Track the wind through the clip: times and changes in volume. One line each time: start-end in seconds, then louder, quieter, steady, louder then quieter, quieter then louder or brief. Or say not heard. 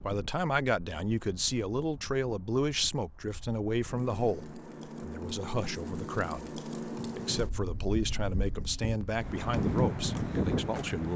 0.0-11.1 louder.